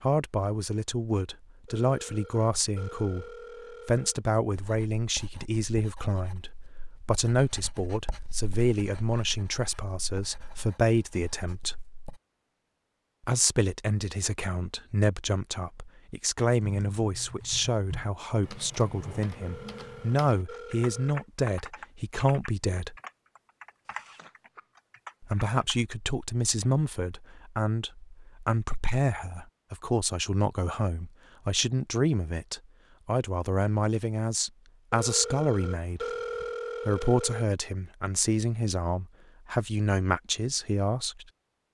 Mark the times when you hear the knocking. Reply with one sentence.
The knocking can't be heard in this clip.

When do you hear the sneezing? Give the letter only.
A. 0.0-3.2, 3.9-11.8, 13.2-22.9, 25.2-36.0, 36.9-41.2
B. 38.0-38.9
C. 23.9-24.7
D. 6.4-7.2
C.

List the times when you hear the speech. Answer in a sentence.
The speech can be heard from 0.0 to 3.2 s, from 3.9 to 11.8 s, from 13.2 to 22.9 s, from 25.2 to 36.0 s and from 36.9 to 41.2 s.